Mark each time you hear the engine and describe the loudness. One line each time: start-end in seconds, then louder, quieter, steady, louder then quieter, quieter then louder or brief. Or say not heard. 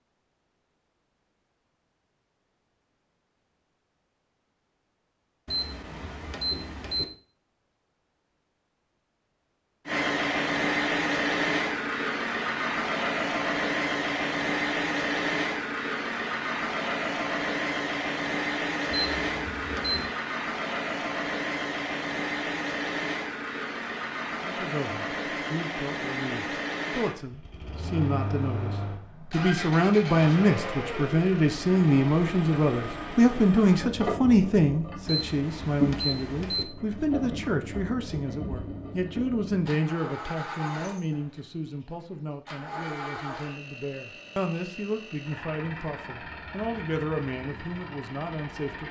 9.8-48.8 quieter.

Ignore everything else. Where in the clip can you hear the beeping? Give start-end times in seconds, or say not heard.
5.5-7.0, 18.9-20.1, 35.0-36.6.